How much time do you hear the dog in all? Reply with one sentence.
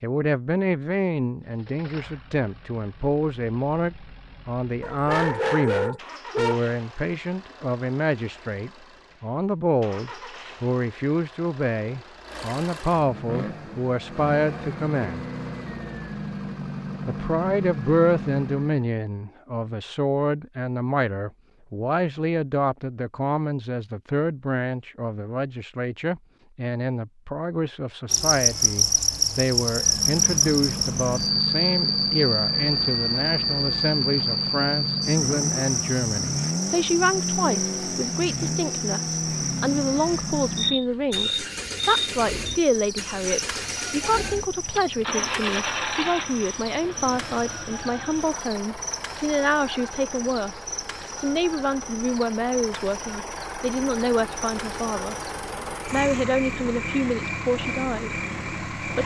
The dog can be heard for 2 seconds in total.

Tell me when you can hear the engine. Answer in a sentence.
The engine can be heard from 1.4 to 18.9 s and from 29.6 to 59.0 s.